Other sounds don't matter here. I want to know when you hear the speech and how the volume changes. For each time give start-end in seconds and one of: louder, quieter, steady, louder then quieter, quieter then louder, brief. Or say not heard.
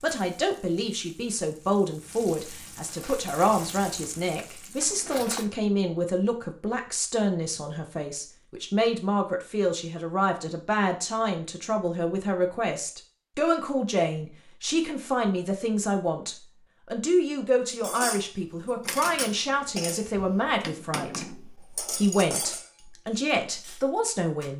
0.0-24.5 steady.